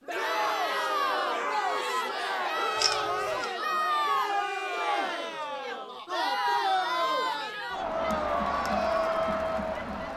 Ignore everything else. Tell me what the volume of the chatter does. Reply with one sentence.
The loudness of the chatter stays about the same.